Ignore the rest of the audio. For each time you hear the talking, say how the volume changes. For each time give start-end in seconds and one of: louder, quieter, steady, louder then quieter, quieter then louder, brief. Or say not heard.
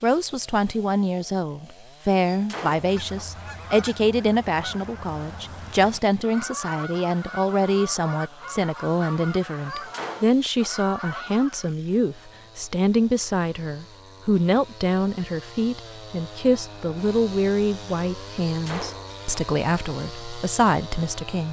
0.0-21.4 steady.